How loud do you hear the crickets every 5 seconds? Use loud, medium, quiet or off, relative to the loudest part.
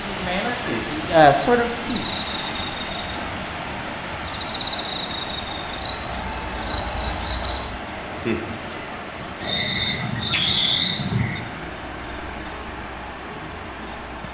medium, loud, loud.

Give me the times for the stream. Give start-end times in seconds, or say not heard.
0.0-14.2.